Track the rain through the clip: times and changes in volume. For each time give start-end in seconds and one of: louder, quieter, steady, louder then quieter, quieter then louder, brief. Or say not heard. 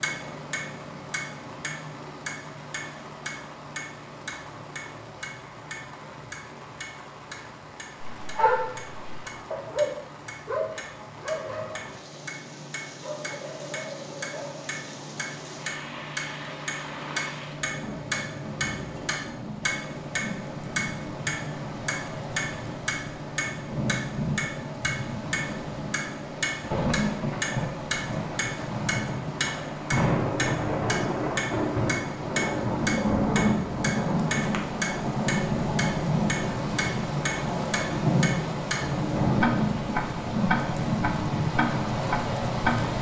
0.0-42.9 louder.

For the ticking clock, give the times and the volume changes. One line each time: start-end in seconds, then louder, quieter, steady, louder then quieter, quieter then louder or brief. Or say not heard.
0.0-42.8 louder.